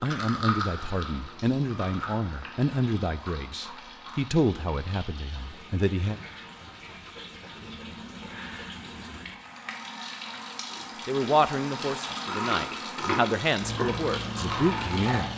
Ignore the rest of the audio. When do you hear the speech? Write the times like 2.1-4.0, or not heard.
0.0-6.2, 11.1-15.3.